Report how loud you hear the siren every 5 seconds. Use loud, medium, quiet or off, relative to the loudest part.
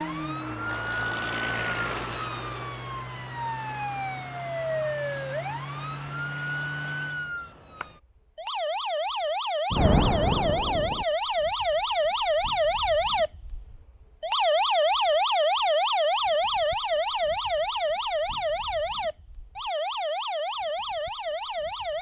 medium, medium, loud, loud, medium.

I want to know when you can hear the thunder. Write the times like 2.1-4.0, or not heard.
9.7-11.1.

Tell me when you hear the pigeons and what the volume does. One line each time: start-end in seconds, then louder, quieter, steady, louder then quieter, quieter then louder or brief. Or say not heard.
not heard.